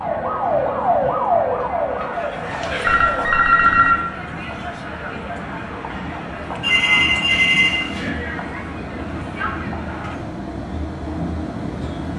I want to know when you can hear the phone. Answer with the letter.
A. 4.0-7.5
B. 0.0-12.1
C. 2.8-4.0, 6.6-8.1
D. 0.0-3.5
C.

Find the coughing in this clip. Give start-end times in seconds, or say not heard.
not heard.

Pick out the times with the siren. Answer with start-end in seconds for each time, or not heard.
0.0-3.5.